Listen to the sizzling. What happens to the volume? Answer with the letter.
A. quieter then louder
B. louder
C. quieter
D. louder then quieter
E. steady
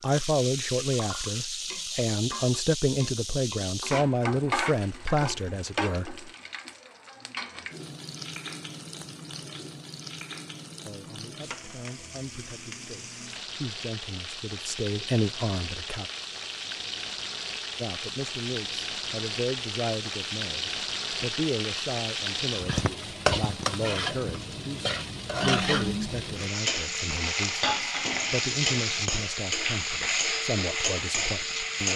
A.